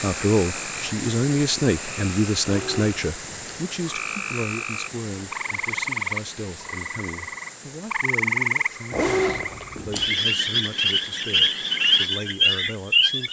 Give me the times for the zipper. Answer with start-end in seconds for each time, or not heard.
2.4-3.6, 8.9-10.1.